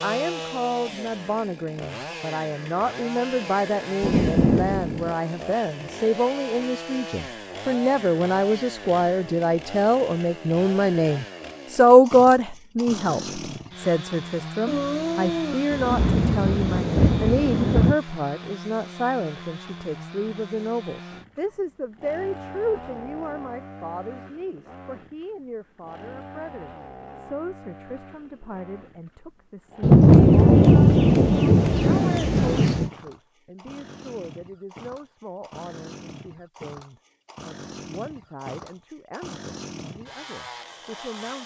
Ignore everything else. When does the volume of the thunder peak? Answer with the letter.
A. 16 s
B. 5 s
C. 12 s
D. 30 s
D.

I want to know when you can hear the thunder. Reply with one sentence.
You can hear the thunder from 4.0 to 5.1 s, from 14.7 to 17.9 s and from 29.8 to 32.9 s.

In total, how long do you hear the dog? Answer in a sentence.
The dog can't be heard in this clip.